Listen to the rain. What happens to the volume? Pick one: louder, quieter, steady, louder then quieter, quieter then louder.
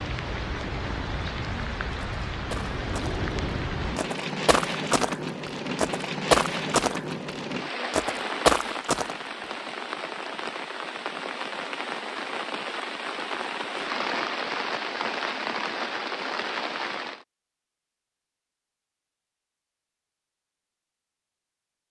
steady.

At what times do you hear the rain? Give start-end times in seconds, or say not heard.
0.0-17.2.